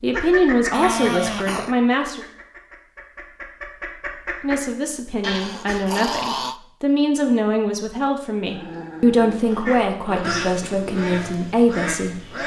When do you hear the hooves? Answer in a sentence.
You can't hear the hooves here.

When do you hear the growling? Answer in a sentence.
The growling can be heard from 0.7 to 1.8 s, from 5.2 to 6.6 s and from 8.4 to 10.4 s.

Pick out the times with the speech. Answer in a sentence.
You can hear the speech from 0.0 to 2.2 s and from 4.4 to 12.4 s.